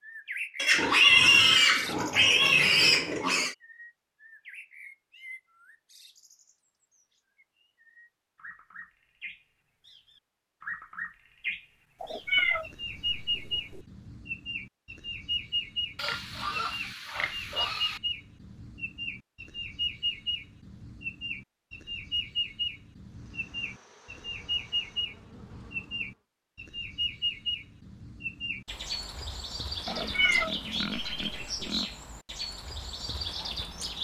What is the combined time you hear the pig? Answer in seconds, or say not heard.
7 s.